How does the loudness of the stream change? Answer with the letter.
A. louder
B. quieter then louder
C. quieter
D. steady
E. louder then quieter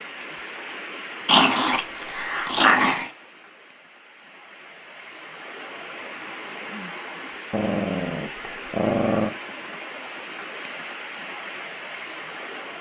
B.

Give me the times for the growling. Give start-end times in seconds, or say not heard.
1.2-3.1, 7.5-9.3.